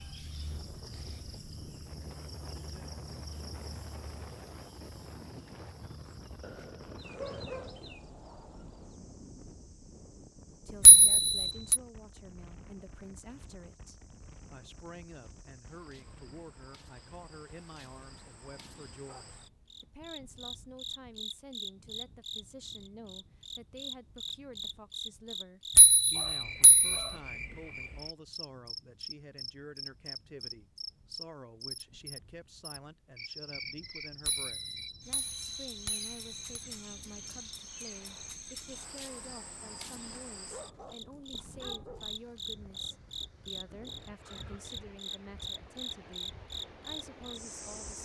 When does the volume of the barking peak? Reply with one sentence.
The loudest moment of the barking is at 7 seconds.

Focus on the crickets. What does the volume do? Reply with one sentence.
The volume of the crickets goes down, then up.